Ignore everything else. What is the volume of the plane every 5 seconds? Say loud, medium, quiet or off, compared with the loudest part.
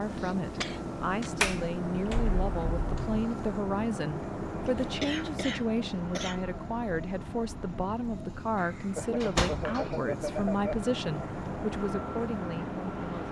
loud, medium, loud.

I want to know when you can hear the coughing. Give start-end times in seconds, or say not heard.
0.1-1.4, 4.7-6.4, 8.9-10.8.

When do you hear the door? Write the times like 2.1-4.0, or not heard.
1.4-3.2, 8.6-10.0.